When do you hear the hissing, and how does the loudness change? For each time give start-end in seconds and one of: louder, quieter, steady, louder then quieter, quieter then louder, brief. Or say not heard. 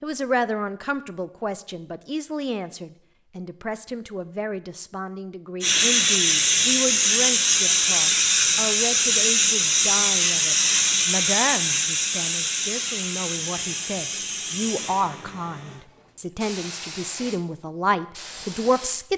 5.6-19.1 quieter.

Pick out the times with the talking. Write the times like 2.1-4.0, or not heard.
0.0-19.1.